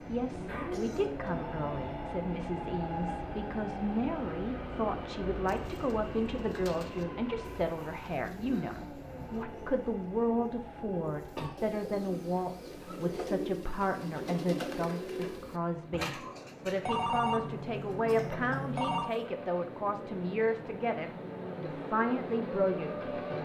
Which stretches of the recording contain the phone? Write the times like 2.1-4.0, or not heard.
0.5-2.1, 16.8-19.1.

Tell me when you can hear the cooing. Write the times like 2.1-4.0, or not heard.
5.5-17.0.